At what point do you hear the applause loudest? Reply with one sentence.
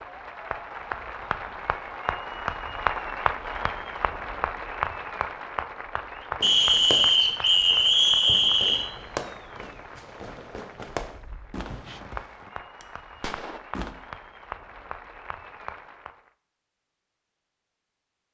The loudest moment of the applause is at 3 seconds.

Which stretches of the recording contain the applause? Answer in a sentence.
The applause can be heard from 0.0 to 16.3 s.